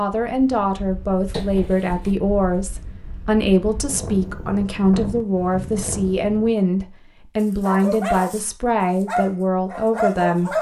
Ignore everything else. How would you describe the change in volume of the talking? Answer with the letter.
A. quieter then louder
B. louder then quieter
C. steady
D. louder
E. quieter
C.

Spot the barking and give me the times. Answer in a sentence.
The barking can be heard from 7.4 to 8.4 s and from 9.0 to 10.5 s.